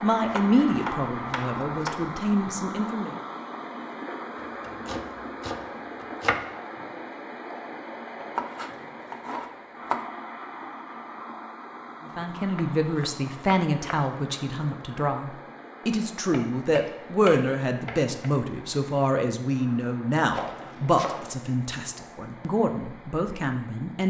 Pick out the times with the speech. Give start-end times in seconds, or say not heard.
0.0-3.1, 12.2-24.0.